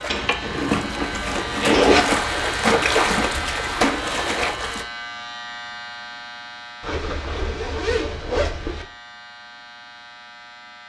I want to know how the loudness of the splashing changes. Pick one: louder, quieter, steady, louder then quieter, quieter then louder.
louder.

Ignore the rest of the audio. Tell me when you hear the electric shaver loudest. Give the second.
3 s.